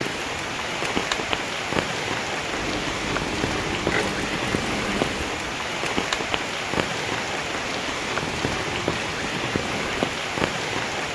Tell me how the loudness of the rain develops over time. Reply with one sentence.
The loudness of the rain stays about the same.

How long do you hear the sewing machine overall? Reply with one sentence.
You can hear the sewing machine for 3 seconds altogether.